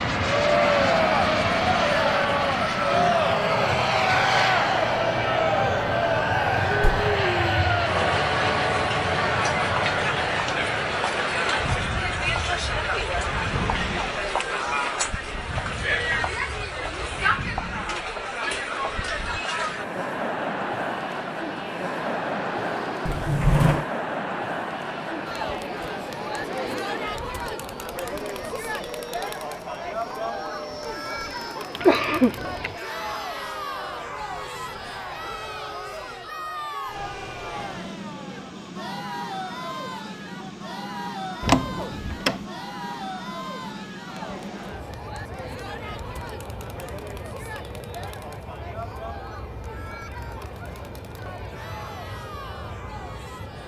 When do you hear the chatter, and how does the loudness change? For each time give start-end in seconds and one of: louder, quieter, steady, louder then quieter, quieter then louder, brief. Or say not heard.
0.1-53.6 quieter.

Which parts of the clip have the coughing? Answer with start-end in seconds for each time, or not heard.
31.8-32.8.